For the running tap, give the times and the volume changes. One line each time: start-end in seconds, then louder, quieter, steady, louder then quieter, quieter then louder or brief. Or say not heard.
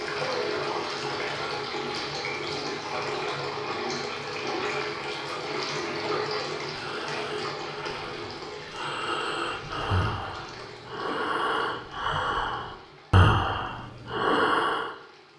0.0-15.3 quieter.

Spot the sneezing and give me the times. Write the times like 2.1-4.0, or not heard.
not heard.